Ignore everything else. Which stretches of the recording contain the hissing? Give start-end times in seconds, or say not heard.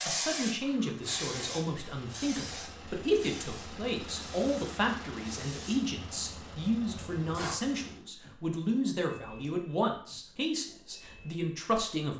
0.0-7.6.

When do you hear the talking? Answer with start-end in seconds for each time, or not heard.
0.1-12.1.